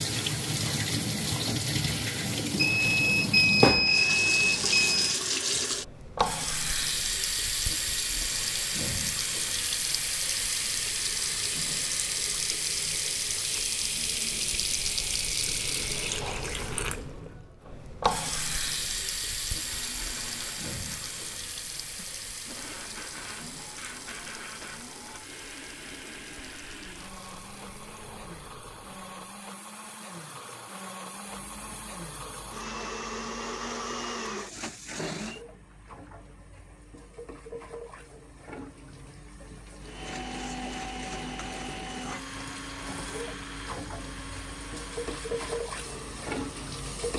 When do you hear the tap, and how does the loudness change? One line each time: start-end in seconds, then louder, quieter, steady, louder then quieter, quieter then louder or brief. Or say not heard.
0.0-47.1 quieter then louder.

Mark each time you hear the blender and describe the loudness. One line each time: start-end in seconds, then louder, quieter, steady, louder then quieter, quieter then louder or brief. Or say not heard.
19.5-35.4 louder
39.8-47.1 quieter.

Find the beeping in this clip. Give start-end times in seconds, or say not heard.
2.5-5.2.